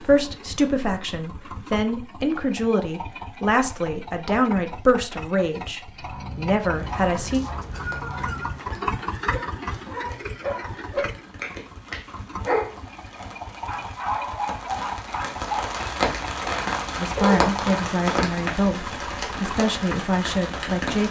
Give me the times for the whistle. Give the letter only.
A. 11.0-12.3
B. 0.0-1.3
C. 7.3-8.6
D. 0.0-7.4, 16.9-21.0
C.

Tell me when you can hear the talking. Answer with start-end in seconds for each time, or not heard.
0.0-7.4, 16.9-21.0.